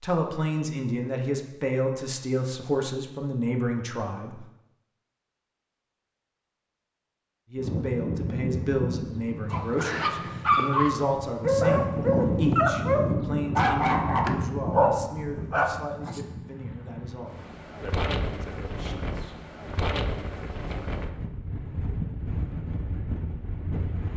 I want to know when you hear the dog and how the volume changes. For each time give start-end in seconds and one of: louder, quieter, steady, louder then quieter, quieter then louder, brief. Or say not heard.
9.5-16.2 steady.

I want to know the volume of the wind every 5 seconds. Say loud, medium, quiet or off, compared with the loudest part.
off, loud, loud, medium, medium.